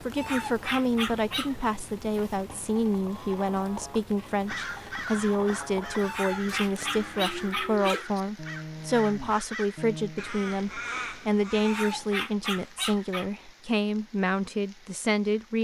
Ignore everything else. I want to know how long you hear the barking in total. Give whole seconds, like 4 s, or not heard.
5 s.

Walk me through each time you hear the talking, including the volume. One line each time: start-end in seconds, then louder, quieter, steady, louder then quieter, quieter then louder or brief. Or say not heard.
0.0-15.5 steady.